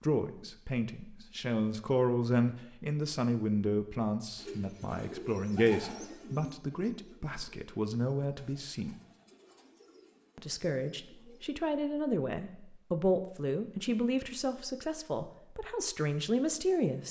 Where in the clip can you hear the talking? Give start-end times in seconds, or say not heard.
0.0-8.9, 10.3-17.0.